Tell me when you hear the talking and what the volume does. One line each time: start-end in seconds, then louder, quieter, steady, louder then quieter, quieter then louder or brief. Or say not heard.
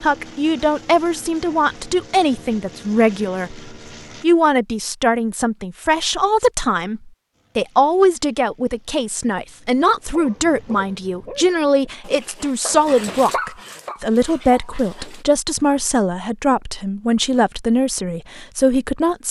0.0-19.2 steady.